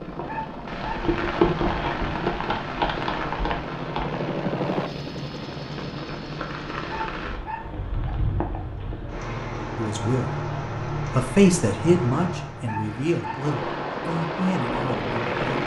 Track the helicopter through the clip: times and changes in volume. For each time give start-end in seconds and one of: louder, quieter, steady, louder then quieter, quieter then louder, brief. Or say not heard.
0.0-7.1 louder then quieter
13.3-15.6 brief.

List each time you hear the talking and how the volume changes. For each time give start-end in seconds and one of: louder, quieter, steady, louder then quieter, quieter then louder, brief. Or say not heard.
9.8-15.6 louder then quieter.